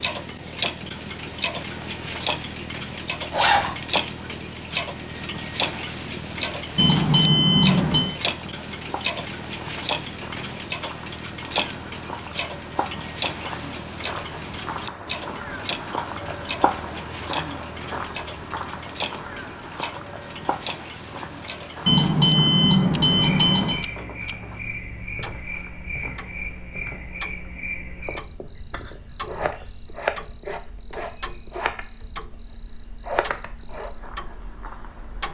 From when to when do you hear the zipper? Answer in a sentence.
You can hear the zipper from 3.3 to 3.7 s.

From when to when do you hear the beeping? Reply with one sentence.
You can hear the beeping from 6.8 to 8.2 s and from 21.9 to 23.8 s.